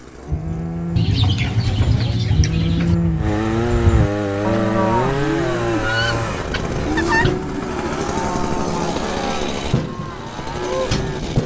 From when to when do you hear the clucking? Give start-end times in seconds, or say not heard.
0.9-3.0, 5.8-7.4.